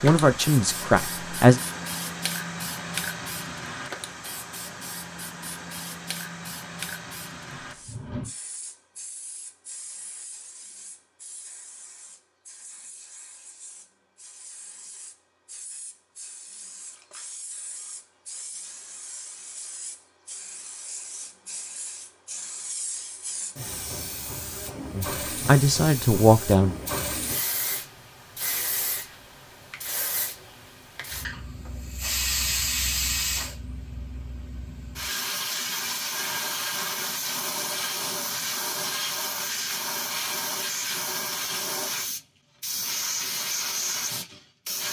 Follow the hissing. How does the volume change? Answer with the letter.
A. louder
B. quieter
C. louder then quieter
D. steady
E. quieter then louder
E.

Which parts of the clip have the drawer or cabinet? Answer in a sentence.
The drawer or cabinet can be heard from 7.6 to 8.3 s.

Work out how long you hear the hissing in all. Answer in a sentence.
You can hear the hissing for 45 seconds altogether.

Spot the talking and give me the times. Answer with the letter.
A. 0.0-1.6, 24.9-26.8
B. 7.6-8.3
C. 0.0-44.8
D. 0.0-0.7
A.